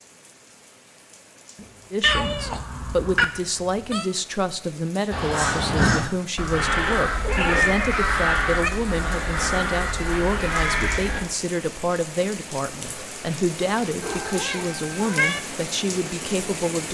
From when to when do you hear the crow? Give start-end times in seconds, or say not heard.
5.1-11.2.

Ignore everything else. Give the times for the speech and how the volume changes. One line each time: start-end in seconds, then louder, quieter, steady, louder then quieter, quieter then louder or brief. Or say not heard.
1.9-16.9 steady.